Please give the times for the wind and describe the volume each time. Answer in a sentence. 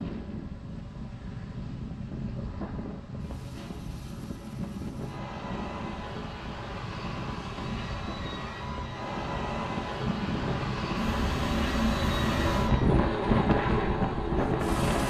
The wind can be heard from 0.0 to 15.0 s, getting louder.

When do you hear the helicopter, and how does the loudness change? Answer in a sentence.
The helicopter can be heard from 0.1 to 15.0 s, getting louder.